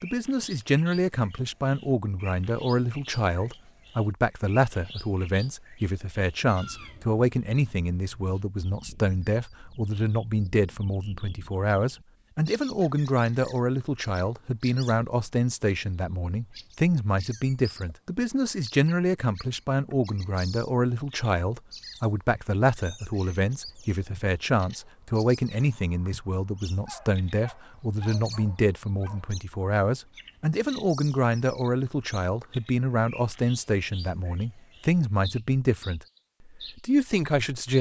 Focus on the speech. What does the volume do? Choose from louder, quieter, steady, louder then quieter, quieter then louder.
steady.